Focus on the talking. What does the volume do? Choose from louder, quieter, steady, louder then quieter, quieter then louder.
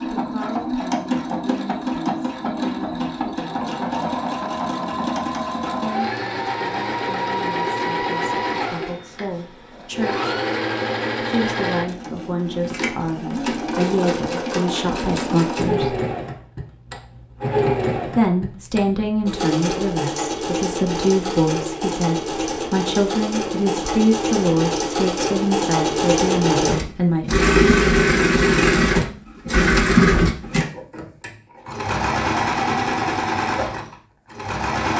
louder.